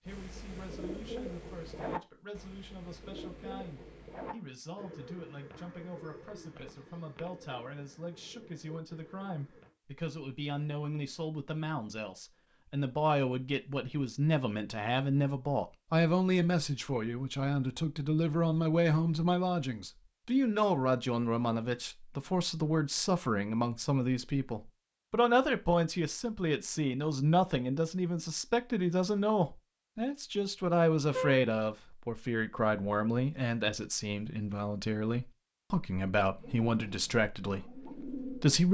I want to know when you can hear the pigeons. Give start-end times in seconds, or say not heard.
0.1-9.8, 36.4-38.6.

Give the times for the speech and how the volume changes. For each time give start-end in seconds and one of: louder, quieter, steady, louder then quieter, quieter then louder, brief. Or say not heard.
0.0-38.6 louder.